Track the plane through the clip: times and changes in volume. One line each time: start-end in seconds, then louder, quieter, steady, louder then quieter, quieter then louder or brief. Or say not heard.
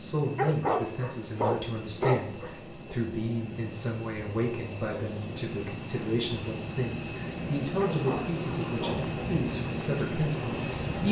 0.0-11.0 louder.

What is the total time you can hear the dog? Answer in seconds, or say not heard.
4 s.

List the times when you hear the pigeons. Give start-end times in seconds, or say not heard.
not heard.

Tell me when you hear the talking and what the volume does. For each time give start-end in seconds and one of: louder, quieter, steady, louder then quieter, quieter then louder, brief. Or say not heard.
0.0-11.0 steady.